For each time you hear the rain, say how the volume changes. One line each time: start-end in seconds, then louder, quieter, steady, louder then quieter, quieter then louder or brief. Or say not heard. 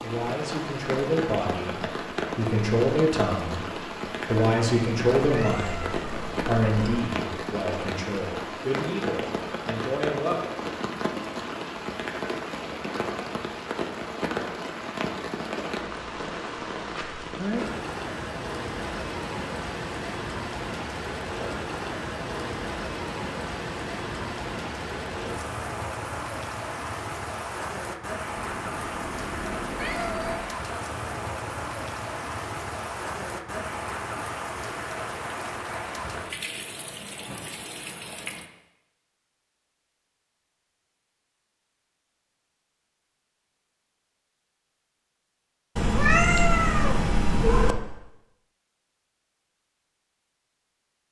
0.0-38.5 steady.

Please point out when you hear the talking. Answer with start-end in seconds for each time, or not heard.
0.0-10.4.